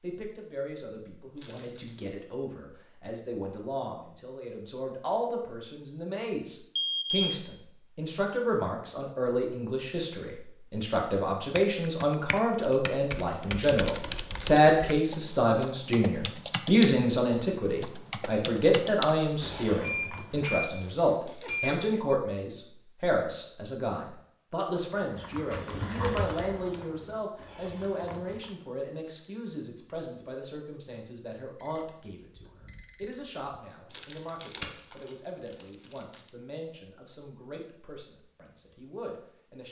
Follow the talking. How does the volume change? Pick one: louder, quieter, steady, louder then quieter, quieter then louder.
louder then quieter.